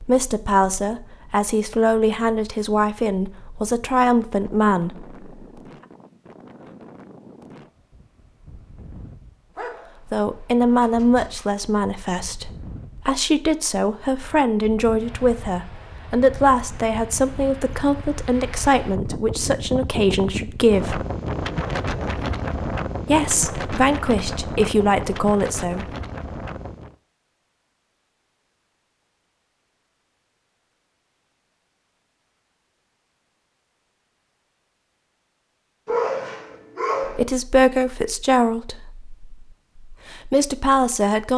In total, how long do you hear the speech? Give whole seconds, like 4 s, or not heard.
23 s.